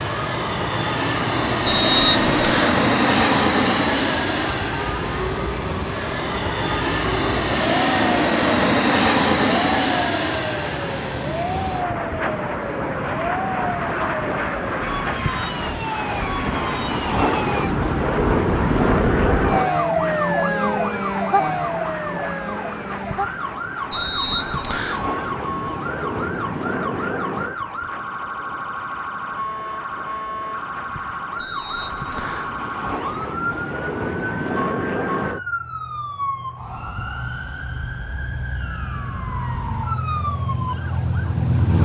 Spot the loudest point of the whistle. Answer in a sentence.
The loudest moment of the whistle is at 2 seconds.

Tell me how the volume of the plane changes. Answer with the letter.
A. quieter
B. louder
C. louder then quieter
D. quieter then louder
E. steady
A.